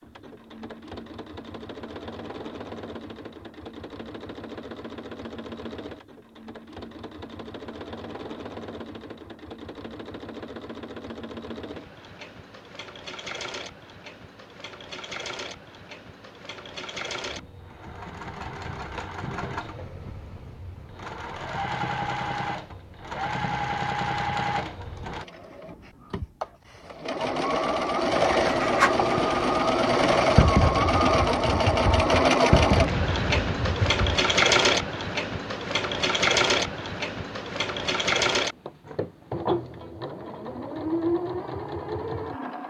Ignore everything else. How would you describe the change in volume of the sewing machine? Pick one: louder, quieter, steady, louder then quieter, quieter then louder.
louder.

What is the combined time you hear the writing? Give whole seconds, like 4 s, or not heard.
6 s.